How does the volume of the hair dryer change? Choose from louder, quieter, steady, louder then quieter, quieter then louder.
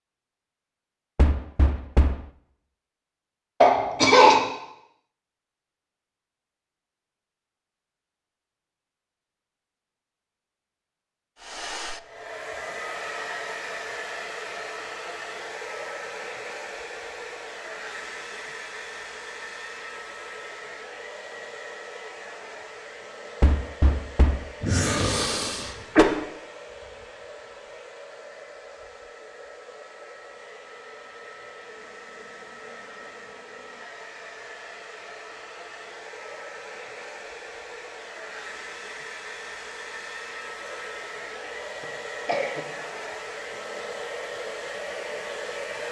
quieter then louder.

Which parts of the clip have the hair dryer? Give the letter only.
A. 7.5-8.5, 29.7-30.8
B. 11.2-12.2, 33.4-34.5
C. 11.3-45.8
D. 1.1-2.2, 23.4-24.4
C.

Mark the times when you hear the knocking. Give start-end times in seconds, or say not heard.
1.1-2.2, 23.4-24.4.